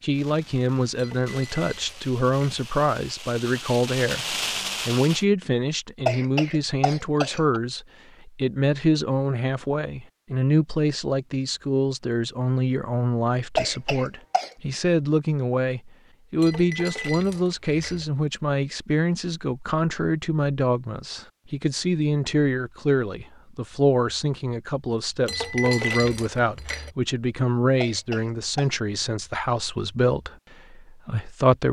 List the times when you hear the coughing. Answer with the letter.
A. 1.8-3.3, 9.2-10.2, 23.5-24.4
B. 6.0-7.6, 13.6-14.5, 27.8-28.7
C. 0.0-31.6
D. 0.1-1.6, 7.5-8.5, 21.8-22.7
B.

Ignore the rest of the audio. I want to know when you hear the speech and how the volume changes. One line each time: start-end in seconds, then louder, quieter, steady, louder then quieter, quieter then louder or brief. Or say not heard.
0.0-31.6 steady.